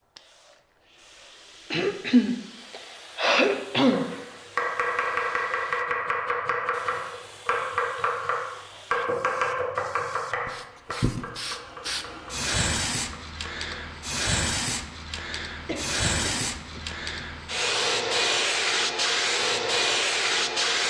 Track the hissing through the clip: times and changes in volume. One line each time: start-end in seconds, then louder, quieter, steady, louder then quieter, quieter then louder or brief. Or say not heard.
0.1-20.8 louder.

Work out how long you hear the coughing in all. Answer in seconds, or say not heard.
5 s.